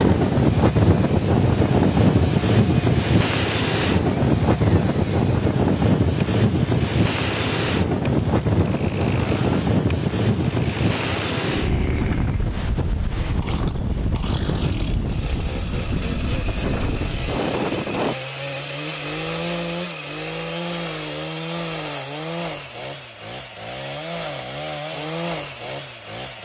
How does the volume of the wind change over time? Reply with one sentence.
The loudness of the wind goes down.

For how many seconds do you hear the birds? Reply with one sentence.
You can't hear the birds here.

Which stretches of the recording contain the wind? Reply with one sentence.
You can hear the wind from 0.0 to 18.1 s.